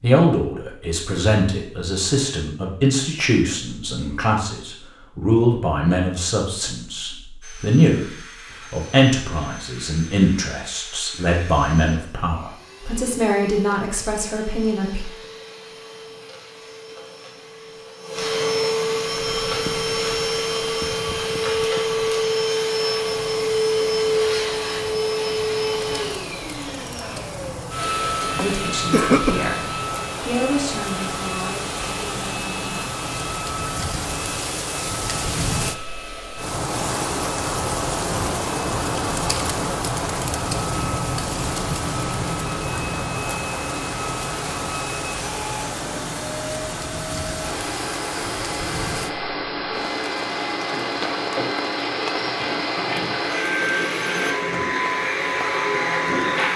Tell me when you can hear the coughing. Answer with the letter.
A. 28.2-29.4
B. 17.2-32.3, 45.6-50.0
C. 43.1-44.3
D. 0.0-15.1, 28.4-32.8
A.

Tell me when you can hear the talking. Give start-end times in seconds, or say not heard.
0.0-15.1, 28.4-32.8.